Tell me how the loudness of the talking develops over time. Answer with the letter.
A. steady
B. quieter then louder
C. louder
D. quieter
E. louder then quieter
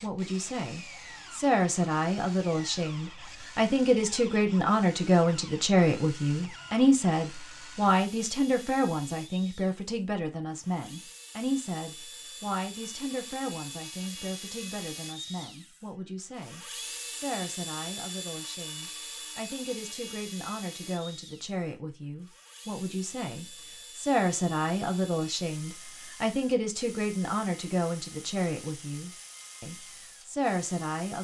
B.